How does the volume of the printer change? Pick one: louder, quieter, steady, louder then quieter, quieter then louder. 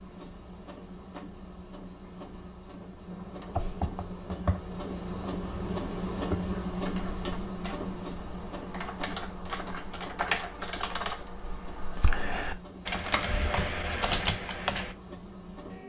louder then quieter.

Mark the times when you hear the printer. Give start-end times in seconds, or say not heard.
0.0-15.8.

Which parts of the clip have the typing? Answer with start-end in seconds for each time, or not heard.
3.0-14.9.